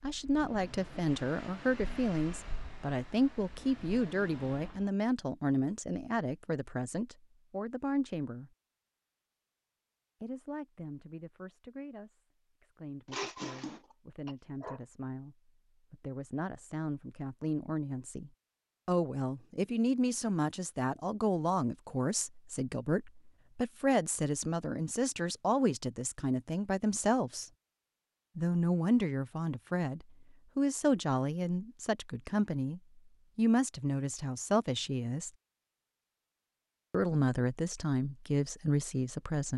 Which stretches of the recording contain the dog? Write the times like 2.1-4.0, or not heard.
13.1-14.8.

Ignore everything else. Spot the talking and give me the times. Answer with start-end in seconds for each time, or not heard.
0.0-8.5, 10.2-27.5, 28.4-35.3, 36.9-39.5.